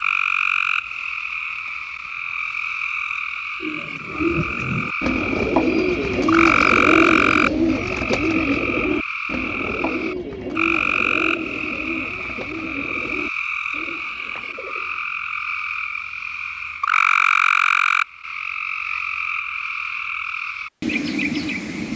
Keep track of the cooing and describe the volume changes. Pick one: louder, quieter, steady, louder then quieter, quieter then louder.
quieter.